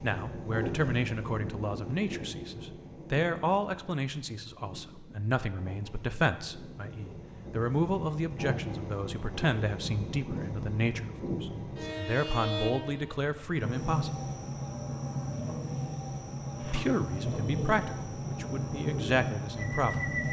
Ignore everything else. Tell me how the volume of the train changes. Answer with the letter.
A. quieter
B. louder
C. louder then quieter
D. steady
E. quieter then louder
E.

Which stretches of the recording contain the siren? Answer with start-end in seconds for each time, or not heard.
not heard.